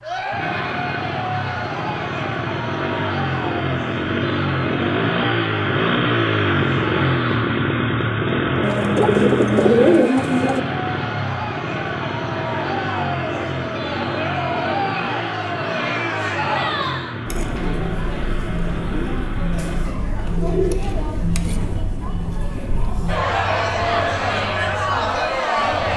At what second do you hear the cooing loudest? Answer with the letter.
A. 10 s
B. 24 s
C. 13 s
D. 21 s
A.